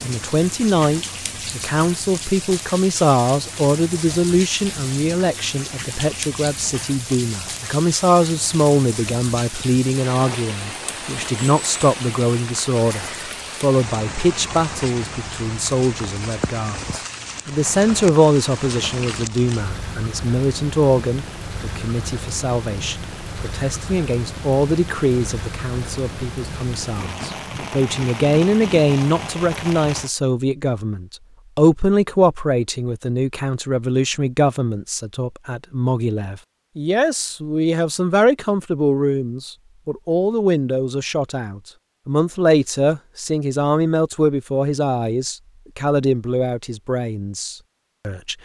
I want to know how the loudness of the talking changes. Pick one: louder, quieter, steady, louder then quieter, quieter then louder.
steady.